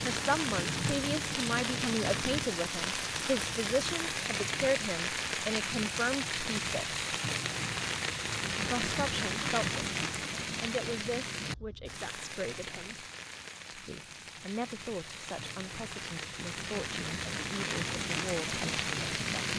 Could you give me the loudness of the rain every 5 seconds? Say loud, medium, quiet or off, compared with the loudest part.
loud, loud, medium, loud.